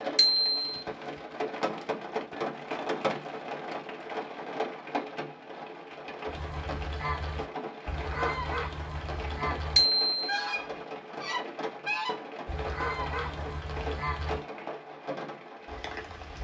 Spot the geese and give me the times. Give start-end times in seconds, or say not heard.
6.2-14.4.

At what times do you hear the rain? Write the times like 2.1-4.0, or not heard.
0.0-16.3.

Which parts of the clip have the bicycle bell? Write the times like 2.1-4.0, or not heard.
0.1-0.8, 9.8-10.3.